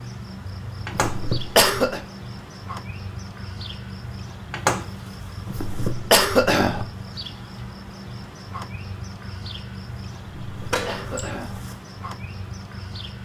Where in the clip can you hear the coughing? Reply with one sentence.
The coughing can be heard from 0.9 to 2.0 s, from 5.5 to 6.8 s and from 10.4 to 11.6 s.